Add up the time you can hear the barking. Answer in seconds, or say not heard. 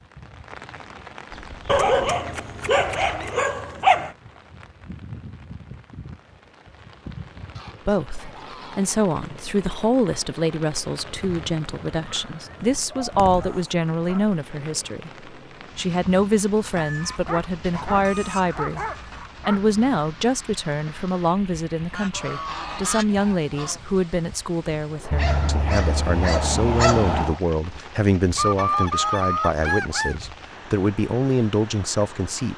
9 s.